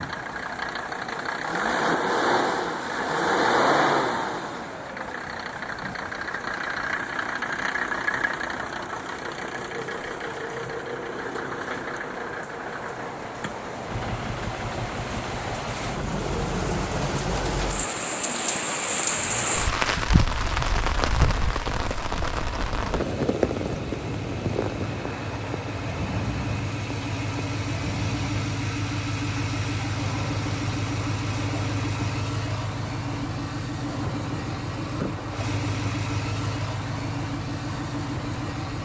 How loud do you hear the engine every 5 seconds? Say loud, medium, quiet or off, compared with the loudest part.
loud, medium, medium, quiet, quiet, medium, medium, medium.